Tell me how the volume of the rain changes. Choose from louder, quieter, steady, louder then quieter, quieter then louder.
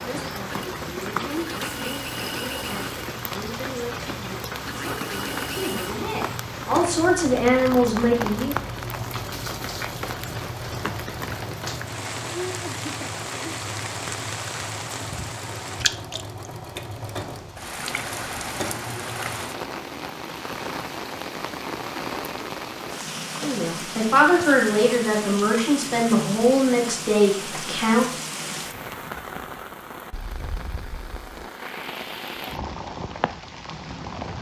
steady.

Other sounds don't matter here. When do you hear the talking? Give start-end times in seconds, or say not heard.
0.0-8.6, 23.4-28.1.